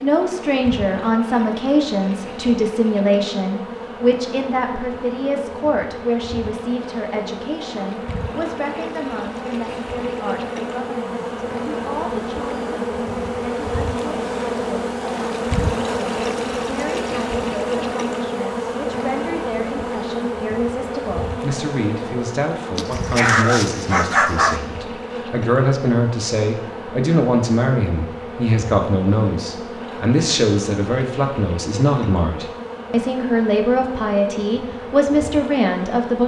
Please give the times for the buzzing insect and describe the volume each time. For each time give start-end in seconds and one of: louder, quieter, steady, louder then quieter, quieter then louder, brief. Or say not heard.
0.0-36.2 louder then quieter.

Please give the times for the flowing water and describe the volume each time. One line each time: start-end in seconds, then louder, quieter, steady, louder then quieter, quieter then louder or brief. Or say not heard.
not heard.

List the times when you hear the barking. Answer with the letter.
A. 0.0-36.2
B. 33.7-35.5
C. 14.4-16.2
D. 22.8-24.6
D.